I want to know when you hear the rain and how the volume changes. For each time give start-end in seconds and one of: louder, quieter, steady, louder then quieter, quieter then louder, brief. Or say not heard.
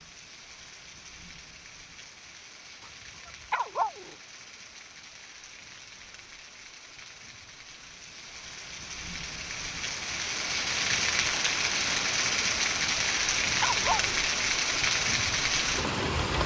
0.0-16.4 louder.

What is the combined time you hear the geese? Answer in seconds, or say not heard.
not heard.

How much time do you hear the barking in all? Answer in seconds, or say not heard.
2 s.